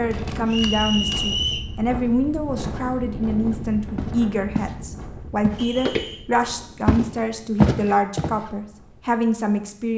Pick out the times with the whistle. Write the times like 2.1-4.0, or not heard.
0.5-1.6, 5.5-6.2.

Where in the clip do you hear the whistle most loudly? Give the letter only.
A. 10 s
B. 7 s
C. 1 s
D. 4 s
C.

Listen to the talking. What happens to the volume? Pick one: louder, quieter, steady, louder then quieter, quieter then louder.
steady.